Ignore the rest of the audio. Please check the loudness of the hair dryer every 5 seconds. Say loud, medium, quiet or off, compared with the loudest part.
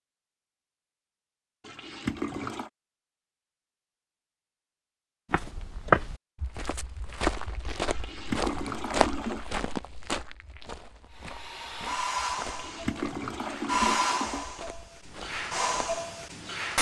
off, off, loud, loud.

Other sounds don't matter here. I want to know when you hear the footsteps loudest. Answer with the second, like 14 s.
6 s.